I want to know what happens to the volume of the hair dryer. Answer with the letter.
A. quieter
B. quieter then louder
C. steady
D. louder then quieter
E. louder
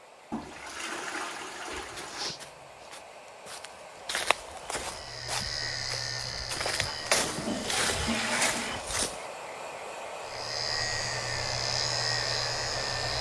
E.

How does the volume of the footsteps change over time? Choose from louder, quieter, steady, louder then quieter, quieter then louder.
louder.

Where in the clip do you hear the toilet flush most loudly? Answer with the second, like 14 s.
8 s.